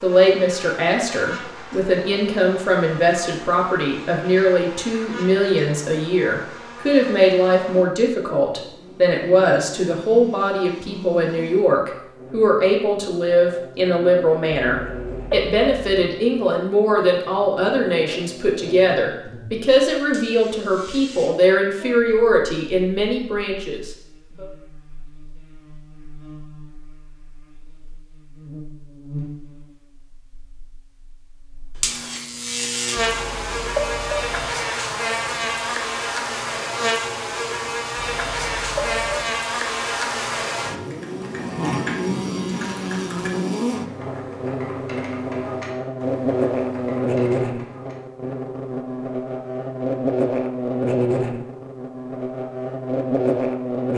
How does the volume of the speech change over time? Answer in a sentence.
The loudness of the speech stays about the same.